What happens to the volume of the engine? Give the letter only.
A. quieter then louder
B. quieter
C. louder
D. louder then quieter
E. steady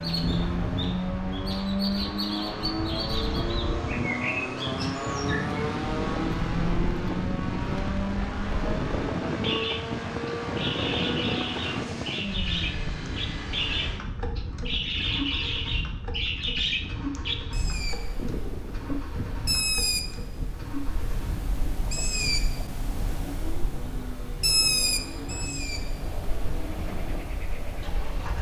B.